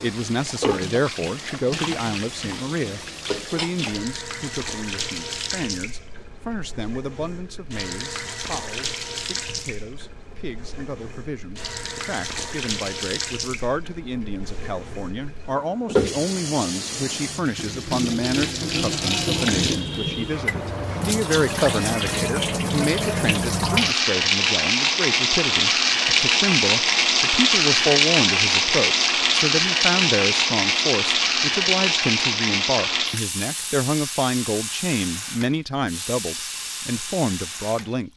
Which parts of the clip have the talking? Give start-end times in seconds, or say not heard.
0.0-38.1.